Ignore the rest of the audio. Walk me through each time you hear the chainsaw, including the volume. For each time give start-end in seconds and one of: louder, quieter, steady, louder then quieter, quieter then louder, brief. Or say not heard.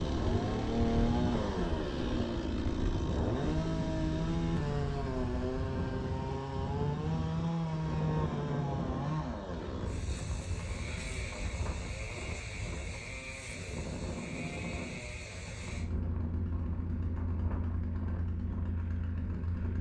0.0-19.7 quieter.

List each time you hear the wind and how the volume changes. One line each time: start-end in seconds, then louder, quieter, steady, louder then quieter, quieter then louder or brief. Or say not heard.
0.0-19.7 quieter.